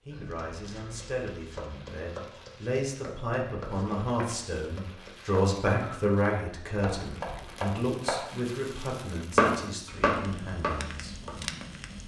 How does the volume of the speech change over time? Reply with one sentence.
The loudness of the speech goes up, then down.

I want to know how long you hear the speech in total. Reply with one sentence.
You can hear the speech for 11 seconds altogether.